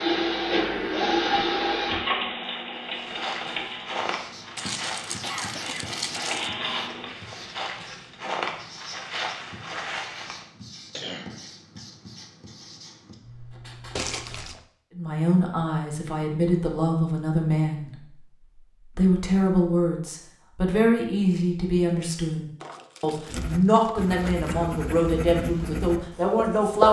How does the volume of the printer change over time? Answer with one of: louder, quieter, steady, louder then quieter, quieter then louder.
quieter then louder.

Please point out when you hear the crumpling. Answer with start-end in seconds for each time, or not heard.
4.5-6.5, 13.9-14.7, 22.6-24.6.